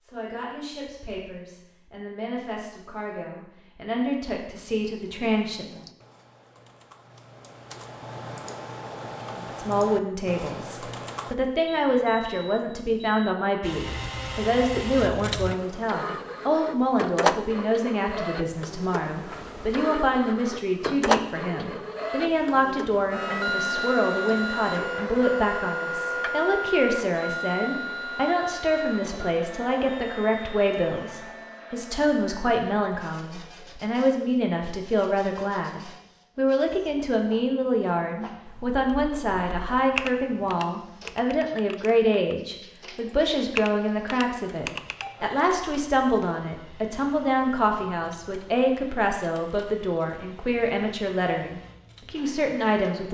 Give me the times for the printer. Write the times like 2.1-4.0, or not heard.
13.6-53.1.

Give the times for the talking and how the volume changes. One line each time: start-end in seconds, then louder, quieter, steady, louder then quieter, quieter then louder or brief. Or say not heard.
0.0-5.8 louder
9.3-53.1 steady.